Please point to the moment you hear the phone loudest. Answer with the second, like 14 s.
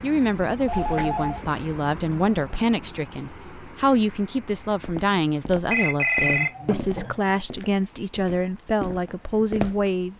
6 s.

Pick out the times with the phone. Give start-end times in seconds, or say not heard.
0.7-1.4, 5.7-7.3.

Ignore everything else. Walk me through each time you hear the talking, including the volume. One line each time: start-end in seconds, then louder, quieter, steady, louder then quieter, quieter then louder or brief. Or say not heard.
0.0-10.1 steady.